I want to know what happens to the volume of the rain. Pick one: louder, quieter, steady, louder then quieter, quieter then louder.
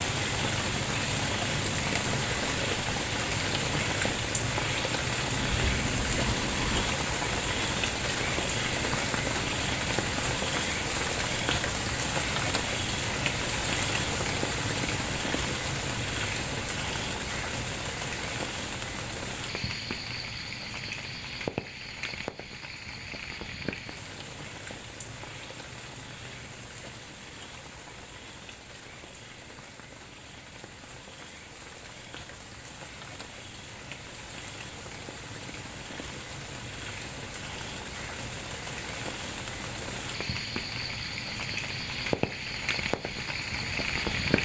quieter then louder.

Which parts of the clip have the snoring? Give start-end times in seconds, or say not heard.
5.3-7.0.